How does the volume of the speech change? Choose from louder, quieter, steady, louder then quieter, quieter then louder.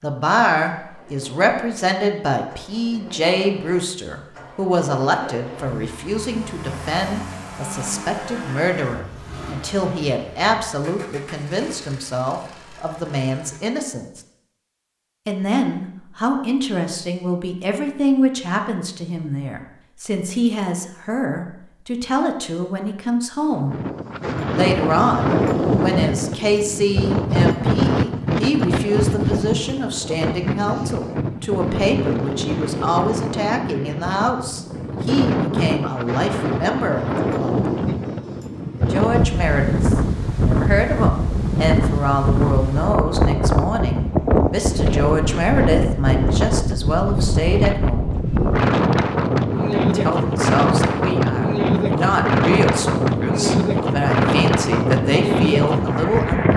steady.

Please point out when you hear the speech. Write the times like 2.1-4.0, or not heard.
0.0-14.2, 15.2-23.8, 24.5-37.7, 38.9-48.1, 49.7-56.5.